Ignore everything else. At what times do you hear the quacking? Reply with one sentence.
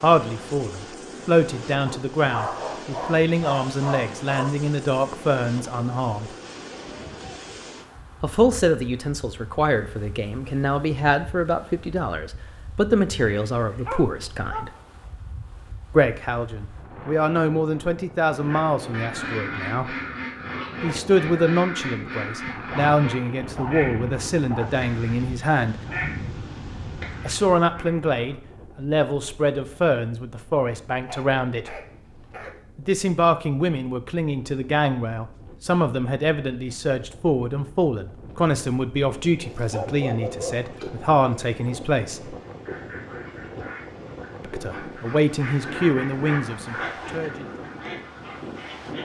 The quacking can be heard from 18.3 to 28.4 s and from 42.5 to 49.0 s.